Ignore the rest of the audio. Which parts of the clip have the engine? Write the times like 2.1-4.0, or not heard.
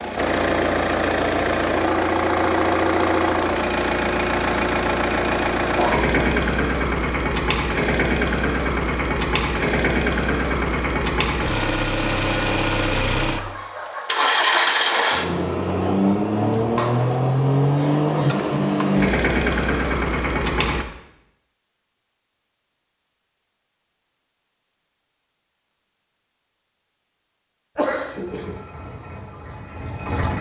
0.0-20.9, 28.2-30.3.